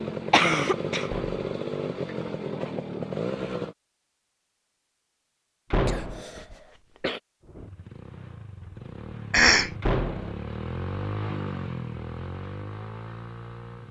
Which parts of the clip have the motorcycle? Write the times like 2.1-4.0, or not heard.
0.0-3.8, 7.4-13.8.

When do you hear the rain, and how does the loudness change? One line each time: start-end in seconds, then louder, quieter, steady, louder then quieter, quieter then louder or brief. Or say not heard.
not heard.